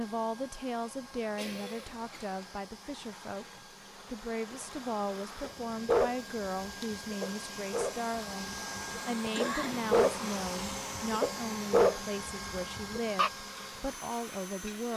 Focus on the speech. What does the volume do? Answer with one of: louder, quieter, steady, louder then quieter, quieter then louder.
steady.